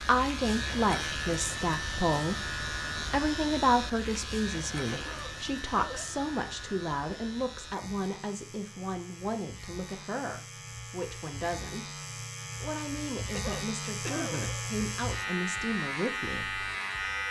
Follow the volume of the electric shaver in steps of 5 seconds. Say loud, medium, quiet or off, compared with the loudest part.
loud, medium, medium, loud.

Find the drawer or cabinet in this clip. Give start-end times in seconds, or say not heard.
not heard.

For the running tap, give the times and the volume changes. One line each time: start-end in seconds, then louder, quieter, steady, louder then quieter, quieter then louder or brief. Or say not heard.
not heard.